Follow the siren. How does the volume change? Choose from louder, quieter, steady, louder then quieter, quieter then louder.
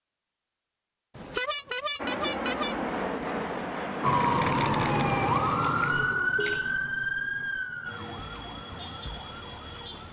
quieter.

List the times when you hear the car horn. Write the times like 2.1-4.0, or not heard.
1.1-2.8, 6.3-6.8.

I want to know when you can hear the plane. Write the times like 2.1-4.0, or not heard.
1.9-5.3.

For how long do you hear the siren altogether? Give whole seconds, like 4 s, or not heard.
6 s.